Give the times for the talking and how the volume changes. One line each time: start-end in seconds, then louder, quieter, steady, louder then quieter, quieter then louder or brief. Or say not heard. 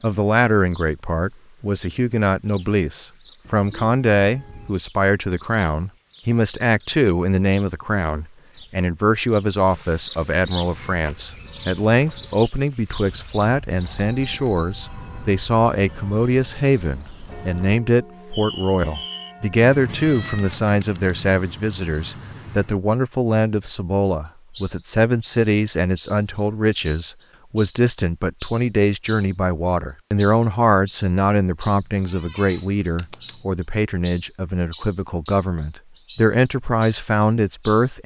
0.0-38.0 steady.